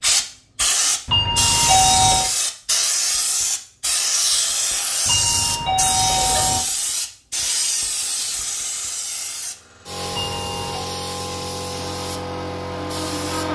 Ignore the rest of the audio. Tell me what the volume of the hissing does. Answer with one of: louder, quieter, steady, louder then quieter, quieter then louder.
quieter.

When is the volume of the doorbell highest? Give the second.
2 s.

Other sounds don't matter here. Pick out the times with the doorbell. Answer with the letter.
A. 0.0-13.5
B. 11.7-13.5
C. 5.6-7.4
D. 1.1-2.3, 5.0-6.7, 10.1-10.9
D.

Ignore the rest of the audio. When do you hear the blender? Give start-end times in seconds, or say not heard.
11.7-13.5.